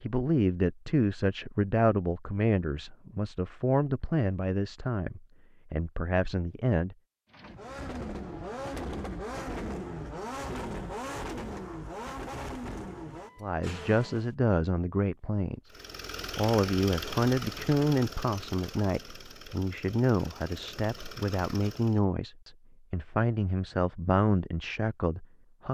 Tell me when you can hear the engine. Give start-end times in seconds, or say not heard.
7.3-14.3, 15.7-22.0.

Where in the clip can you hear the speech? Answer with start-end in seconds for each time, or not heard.
0.0-7.0, 13.4-15.7, 16.4-25.6.